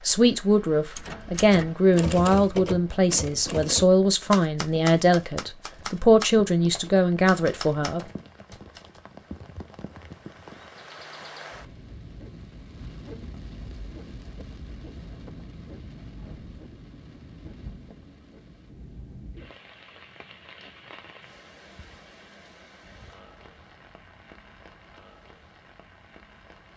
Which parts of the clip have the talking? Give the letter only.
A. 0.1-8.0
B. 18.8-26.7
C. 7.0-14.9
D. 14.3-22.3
A.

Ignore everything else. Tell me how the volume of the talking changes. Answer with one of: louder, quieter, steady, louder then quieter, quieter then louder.
steady.